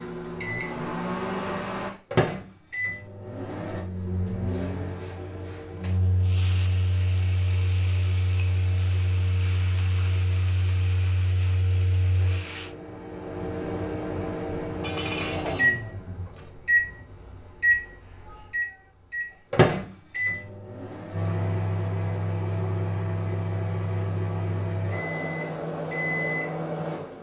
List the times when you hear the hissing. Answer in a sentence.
The hissing can be heard from 4.5 to 12.8 s.